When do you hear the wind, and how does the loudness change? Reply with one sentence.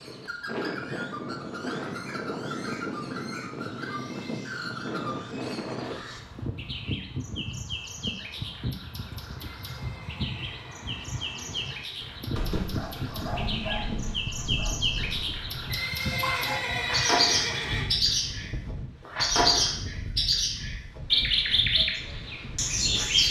The wind can be heard from 0.0 to 23.2 s, getting quieter.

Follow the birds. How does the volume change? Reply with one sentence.
The volume of the birds goes up.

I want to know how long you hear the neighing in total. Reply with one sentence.
You can hear the neighing for 5 seconds altogether.